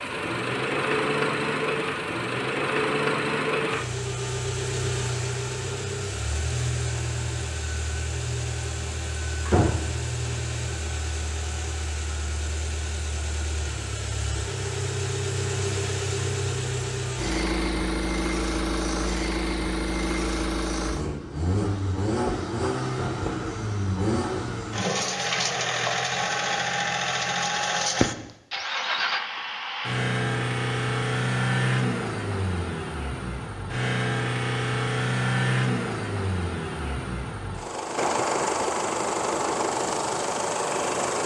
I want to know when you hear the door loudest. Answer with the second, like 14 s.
10 s.